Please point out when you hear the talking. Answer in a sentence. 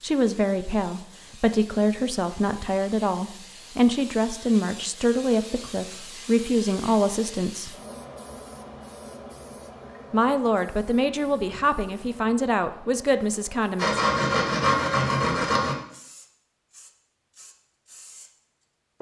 The talking can be heard from 0.0 to 7.8 s and from 10.1 to 14.0 s.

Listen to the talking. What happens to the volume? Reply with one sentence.
The loudness of the talking stays about the same.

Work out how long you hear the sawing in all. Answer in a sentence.
You can hear the sawing for 2 seconds altogether.